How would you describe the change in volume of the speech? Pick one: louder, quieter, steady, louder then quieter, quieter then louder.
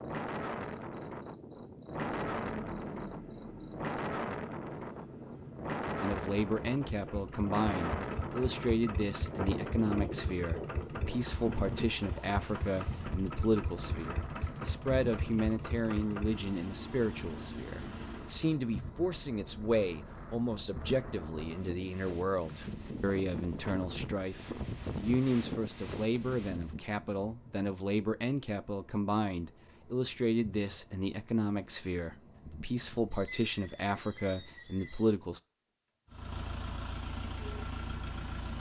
steady.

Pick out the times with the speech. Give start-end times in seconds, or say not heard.
6.0-35.4.